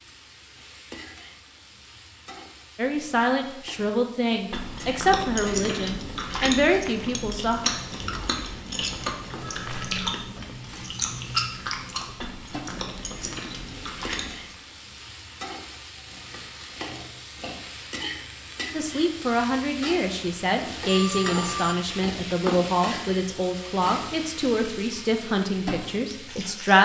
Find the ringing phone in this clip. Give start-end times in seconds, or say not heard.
9.4-10.2, 20.9-21.8.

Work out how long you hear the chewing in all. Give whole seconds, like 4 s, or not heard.
10 s.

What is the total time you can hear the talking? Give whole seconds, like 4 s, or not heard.
13 s.